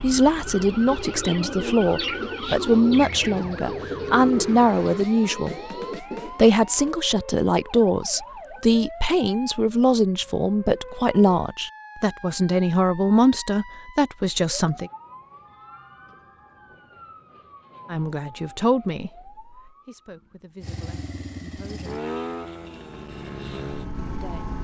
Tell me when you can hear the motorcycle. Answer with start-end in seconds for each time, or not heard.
20.6-24.5.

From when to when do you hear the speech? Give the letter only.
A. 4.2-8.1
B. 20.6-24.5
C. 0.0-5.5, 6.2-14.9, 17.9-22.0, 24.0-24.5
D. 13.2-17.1
C.